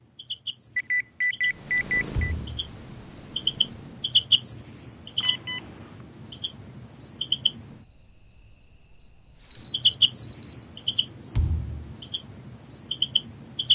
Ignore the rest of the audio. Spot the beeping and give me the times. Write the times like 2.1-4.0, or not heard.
0.8-2.4, 5.2-5.8, 9.5-10.7.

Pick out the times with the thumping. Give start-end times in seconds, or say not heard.
2.1-2.6, 11.3-11.9.